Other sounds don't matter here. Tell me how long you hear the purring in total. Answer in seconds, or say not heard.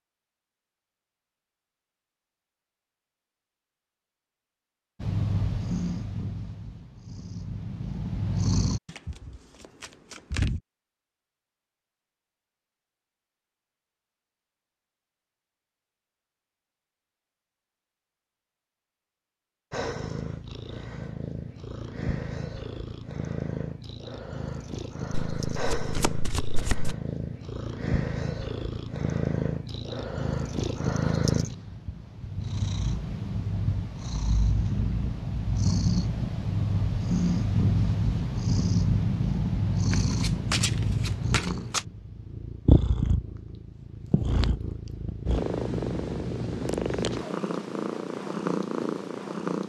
34 s.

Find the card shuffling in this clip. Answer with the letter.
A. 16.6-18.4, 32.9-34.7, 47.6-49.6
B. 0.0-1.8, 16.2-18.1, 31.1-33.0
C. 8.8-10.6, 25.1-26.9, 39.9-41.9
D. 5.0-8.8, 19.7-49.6
C.